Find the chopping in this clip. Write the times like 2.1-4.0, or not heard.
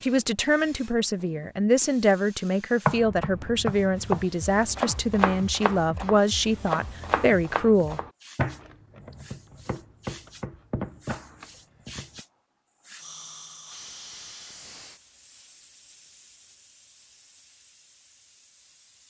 2.9-12.2.